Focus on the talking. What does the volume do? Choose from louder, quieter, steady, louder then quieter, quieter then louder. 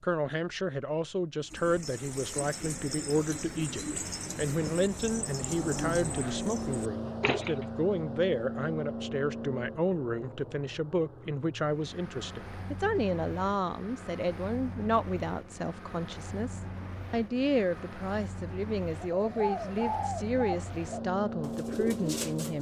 steady.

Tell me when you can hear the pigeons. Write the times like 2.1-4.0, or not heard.
1.4-7.7, 19.0-22.5.